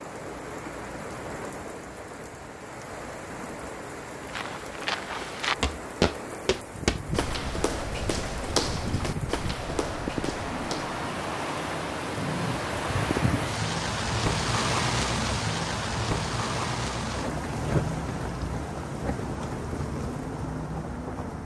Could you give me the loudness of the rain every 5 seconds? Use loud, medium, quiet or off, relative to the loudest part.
medium, medium, loud, loud, medium.